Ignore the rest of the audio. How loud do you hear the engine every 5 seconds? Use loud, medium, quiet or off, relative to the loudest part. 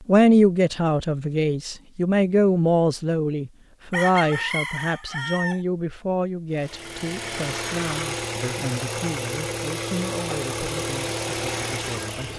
off, loud, loud.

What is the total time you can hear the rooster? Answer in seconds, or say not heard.
2 s.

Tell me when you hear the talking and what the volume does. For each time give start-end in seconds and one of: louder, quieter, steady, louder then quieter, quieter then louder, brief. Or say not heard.
0.1-12.3 quieter.